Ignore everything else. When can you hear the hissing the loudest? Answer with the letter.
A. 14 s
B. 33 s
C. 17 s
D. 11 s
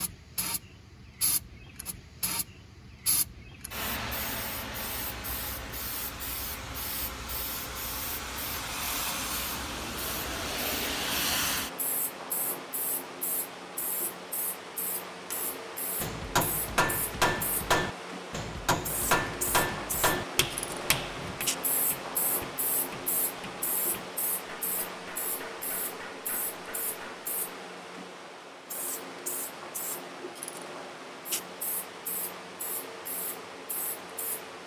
D.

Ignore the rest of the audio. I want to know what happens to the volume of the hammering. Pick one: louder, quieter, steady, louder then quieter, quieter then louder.
quieter.